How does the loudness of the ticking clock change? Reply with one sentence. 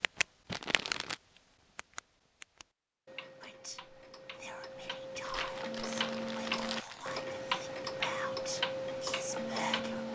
The volume of the ticking clock goes down, then up.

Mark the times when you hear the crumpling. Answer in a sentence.
The crumpling can be heard from 0.5 to 1.2 s and from 5.2 to 7.2 s.